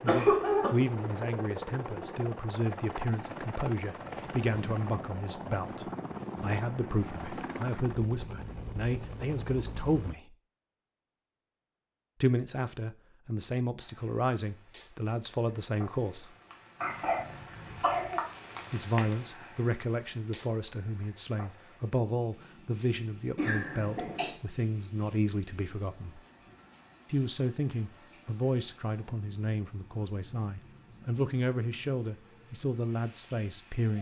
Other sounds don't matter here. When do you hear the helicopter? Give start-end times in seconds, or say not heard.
0.0-10.2.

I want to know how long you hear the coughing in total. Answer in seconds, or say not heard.
3 s.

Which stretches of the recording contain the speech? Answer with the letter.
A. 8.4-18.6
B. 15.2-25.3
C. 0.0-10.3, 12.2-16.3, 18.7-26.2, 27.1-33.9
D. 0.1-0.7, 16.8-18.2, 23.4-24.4
C.